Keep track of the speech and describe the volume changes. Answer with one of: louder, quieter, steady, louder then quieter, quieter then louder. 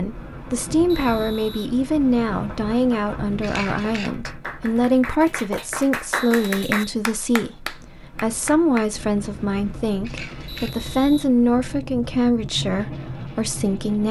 steady.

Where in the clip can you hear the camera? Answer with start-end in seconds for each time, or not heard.
3.4-4.1, 10.0-10.7.